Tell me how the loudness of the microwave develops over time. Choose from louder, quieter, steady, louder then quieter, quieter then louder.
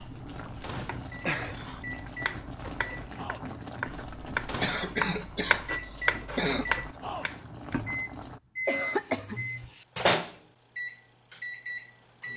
louder.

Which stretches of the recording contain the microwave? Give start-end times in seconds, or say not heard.
0.0-12.3.